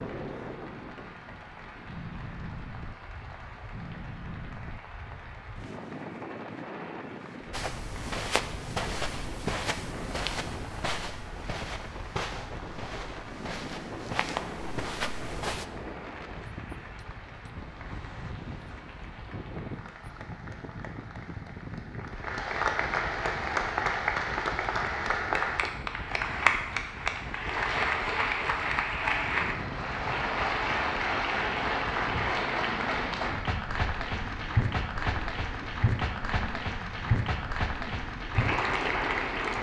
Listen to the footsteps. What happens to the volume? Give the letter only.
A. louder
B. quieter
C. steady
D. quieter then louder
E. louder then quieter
D.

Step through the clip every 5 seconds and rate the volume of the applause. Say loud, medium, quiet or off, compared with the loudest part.
quiet, quiet, quiet, quiet, loud, loud, loud, loud.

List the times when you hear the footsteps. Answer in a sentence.
You can hear the footsteps from 7.5 to 15.7 s.